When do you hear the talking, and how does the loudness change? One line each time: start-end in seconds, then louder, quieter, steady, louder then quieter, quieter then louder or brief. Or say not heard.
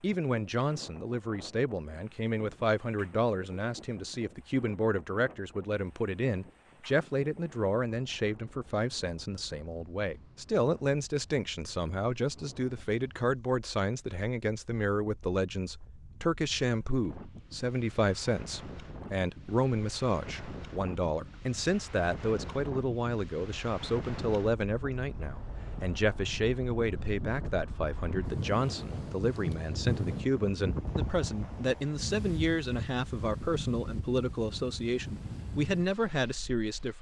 0.0-36.9 steady.